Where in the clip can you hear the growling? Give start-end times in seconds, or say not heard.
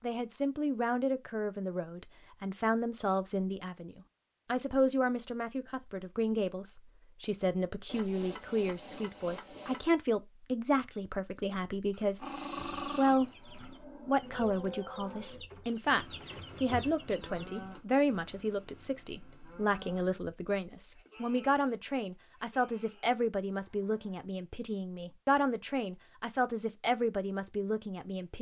11.9-13.8.